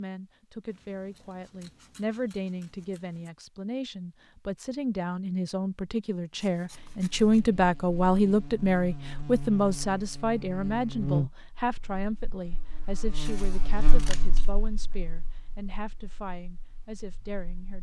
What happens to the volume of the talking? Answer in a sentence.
The loudness of the talking goes up, then down.